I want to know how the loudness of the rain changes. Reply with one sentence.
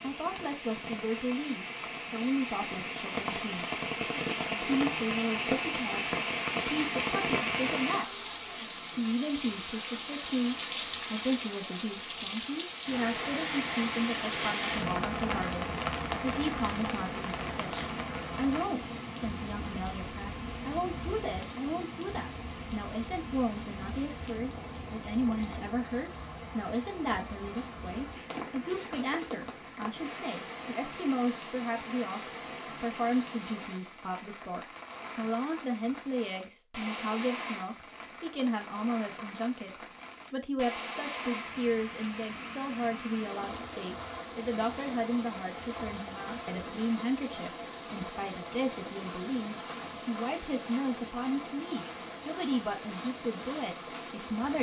The volume of the rain goes down.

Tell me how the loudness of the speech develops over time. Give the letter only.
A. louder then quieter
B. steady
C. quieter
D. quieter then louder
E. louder
B.